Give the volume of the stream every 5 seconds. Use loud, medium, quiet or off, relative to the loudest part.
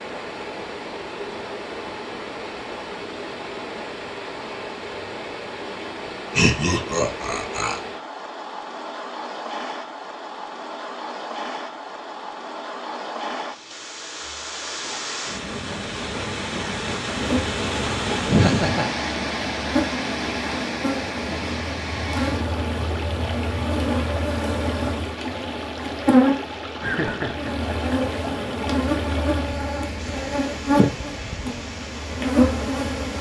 medium, medium, medium, loud, loud, medium, medium.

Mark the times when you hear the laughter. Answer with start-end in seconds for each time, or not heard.
6.3-7.8, 18.2-18.9, 26.8-28.1.